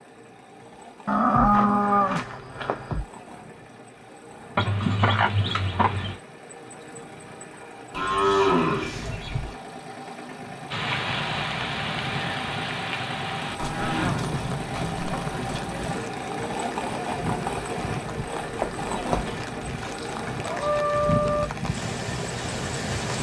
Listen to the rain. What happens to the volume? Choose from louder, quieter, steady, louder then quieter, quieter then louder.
quieter then louder.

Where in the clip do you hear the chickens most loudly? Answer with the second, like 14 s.
5 s.